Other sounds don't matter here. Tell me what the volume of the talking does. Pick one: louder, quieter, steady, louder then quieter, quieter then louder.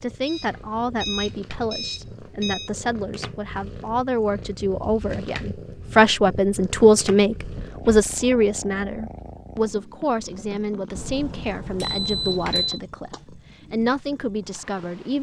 louder then quieter.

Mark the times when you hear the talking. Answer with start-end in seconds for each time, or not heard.
0.0-15.1.